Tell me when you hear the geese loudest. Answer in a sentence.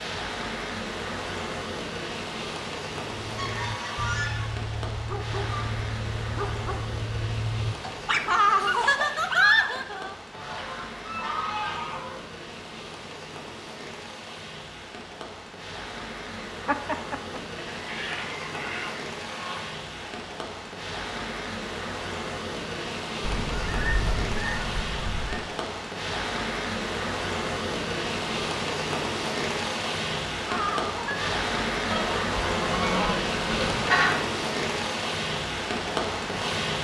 The loudest moment of the geese is at 34 seconds.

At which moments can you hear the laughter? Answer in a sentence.
The laughter can be heard from 8.2 to 10.2 s, from 16.4 to 17.4 s and from 30.4 to 31.4 s.